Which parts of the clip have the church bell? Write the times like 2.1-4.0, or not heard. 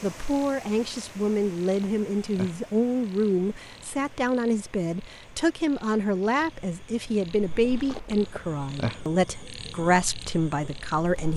not heard.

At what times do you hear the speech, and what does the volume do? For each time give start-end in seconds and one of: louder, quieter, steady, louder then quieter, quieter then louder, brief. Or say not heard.
0.0-11.3 steady.